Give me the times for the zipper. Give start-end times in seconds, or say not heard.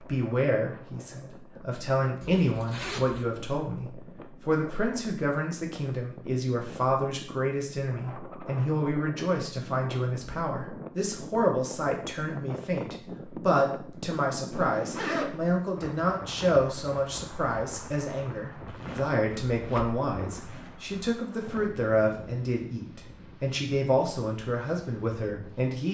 2.2-3.2, 14.5-15.4, 18.6-20.8.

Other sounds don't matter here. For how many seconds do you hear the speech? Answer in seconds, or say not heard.
26 s.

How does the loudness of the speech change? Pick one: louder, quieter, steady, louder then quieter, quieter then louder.
steady.